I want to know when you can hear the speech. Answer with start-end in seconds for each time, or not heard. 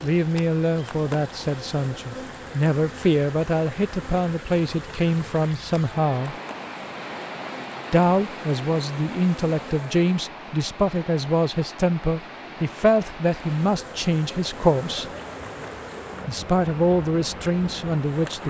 0.0-6.3, 7.9-15.1, 16.2-18.4.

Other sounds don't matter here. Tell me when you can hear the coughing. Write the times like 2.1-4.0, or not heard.
not heard.